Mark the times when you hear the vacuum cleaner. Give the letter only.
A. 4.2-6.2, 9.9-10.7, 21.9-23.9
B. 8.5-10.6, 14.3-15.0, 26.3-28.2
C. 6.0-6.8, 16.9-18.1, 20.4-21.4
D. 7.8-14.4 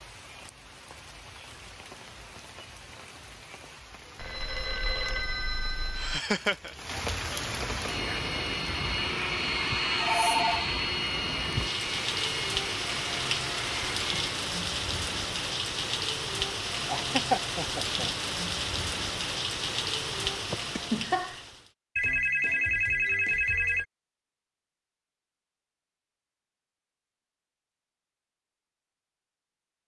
D.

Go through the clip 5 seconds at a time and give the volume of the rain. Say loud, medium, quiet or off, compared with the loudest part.
quiet, medium, loud, loud, loud, off.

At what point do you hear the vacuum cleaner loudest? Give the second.
10 s.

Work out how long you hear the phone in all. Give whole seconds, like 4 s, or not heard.
5 s.